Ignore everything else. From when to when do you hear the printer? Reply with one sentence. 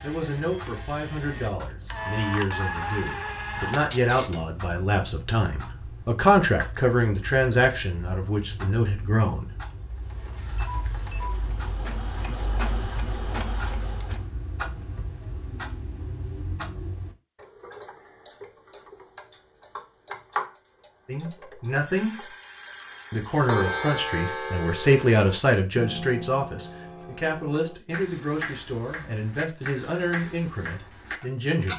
The printer can be heard from 0.0 to 4.5 s and from 9.9 to 14.3 s.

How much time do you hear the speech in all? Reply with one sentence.
You can hear the speech for 19 seconds altogether.